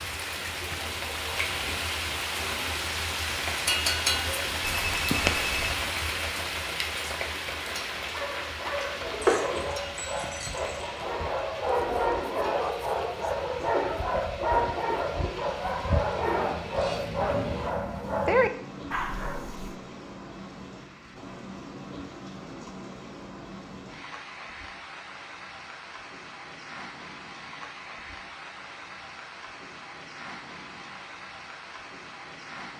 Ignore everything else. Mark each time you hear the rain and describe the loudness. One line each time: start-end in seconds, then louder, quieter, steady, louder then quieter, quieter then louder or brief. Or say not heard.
0.0-32.7 quieter.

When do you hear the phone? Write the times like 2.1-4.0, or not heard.
4.6-5.8.